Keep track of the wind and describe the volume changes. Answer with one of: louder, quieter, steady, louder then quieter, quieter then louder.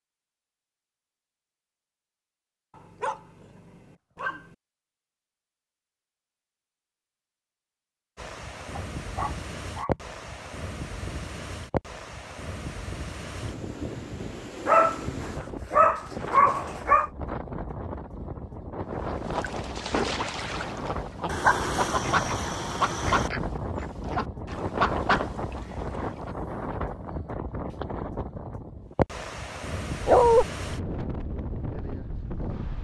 steady.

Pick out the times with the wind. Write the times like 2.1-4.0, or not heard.
8.2-32.7.